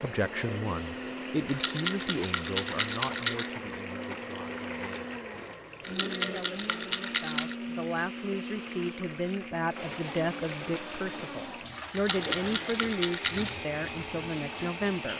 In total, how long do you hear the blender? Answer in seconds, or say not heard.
15 s.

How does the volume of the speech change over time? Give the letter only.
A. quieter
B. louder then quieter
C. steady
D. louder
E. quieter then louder
E.